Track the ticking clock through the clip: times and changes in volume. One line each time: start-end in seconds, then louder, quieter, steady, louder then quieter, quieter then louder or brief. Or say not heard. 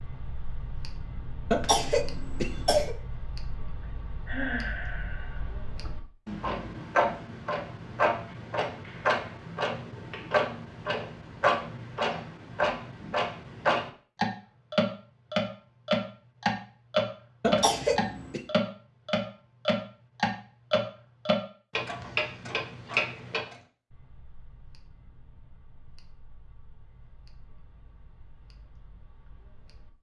0.0-29.9 louder then quieter.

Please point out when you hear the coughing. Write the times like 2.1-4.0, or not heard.
1.5-3.0, 17.4-18.4.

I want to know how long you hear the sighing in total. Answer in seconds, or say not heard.
2 s.